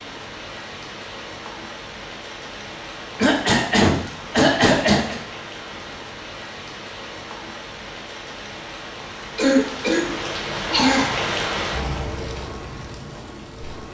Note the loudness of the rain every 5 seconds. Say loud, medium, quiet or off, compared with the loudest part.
medium, medium, loud.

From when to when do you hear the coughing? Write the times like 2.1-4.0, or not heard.
3.1-5.2, 9.3-11.2.